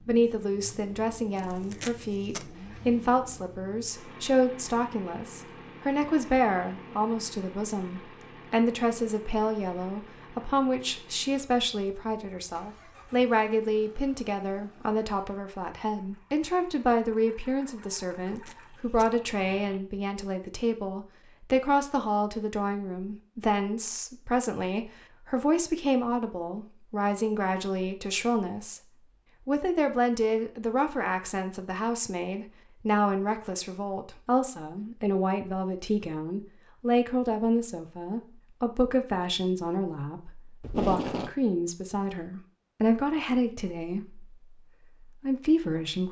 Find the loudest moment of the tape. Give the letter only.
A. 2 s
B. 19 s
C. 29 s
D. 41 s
D.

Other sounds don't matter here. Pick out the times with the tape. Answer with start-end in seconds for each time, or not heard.
1.4-2.5, 18.4-19.1, 40.6-41.3.